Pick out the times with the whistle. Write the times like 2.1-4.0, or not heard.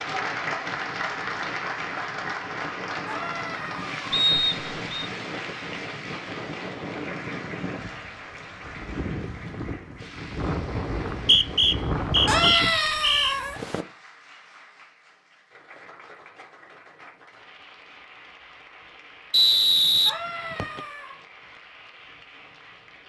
4.1-5.0, 11.1-13.3, 19.3-20.8.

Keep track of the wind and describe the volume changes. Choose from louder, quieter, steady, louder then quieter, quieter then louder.
louder.